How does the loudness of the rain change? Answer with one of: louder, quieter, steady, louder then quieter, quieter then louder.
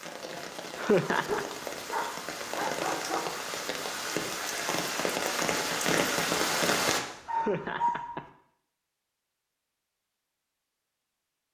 louder.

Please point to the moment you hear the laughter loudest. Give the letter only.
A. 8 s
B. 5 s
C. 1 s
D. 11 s
C.